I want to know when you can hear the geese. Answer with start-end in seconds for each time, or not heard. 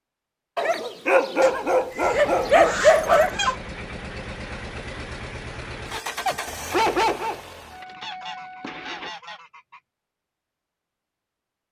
1.4-3.6, 8.0-9.8.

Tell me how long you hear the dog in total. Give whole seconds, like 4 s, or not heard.
4 s.